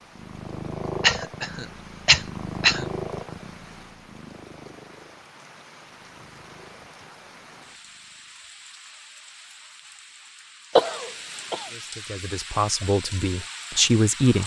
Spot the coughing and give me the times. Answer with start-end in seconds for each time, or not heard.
1.0-2.9, 10.8-11.7.